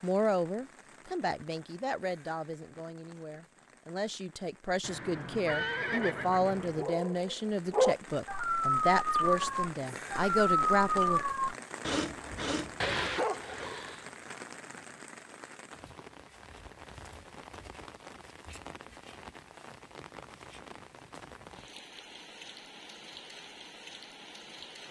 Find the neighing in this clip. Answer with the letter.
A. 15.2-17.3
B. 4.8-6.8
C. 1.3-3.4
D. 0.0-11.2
B.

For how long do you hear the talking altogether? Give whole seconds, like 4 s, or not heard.
11 s.